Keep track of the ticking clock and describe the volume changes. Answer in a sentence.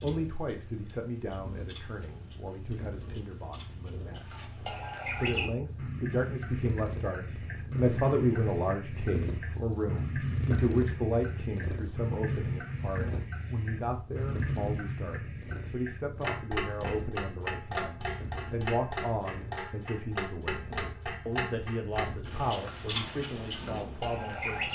The loudness of the ticking clock goes up.